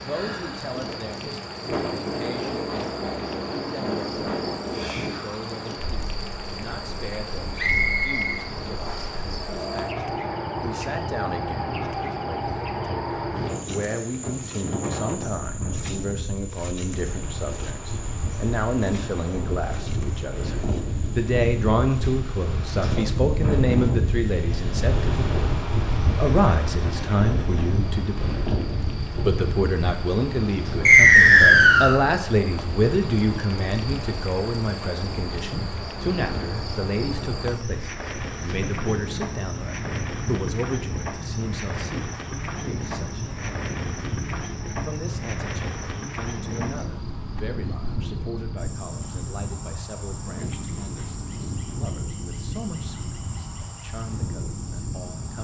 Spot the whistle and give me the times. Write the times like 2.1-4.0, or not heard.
7.5-9.1, 30.9-31.9.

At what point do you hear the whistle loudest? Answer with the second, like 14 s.
31 s.